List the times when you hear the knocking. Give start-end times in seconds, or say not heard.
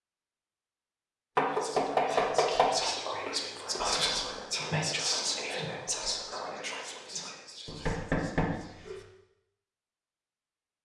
1.4-2.7, 7.7-9.1.